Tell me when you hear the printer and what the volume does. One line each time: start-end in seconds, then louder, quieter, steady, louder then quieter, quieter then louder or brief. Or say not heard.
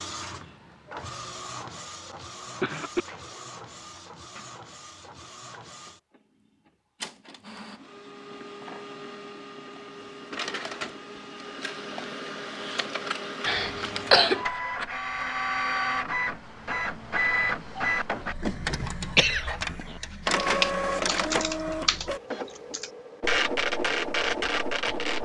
0.0-25.1 louder.